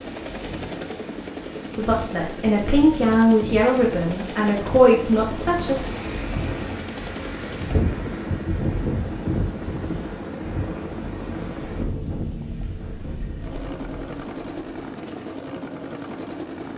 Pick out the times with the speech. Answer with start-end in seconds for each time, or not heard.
1.8-5.8.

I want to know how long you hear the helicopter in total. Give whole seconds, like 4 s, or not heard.
17 s.